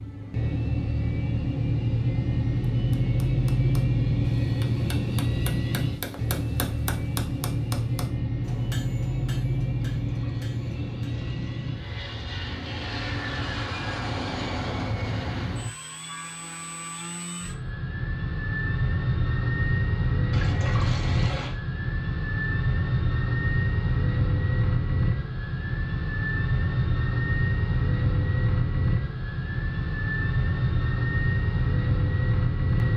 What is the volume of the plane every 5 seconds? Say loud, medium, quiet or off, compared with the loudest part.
loud, loud, medium, medium, loud, loud, loud.